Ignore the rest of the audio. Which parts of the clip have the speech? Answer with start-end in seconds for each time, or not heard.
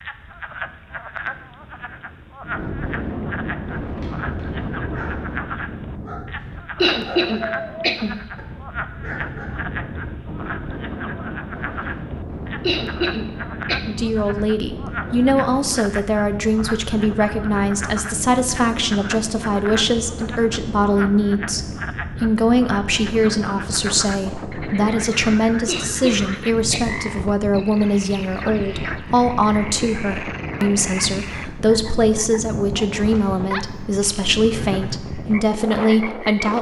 13.9-36.5.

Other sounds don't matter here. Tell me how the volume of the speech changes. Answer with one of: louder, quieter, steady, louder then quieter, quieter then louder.
steady.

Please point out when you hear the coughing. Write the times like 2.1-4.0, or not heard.
6.8-8.2, 12.6-14.1, 25.6-27.1.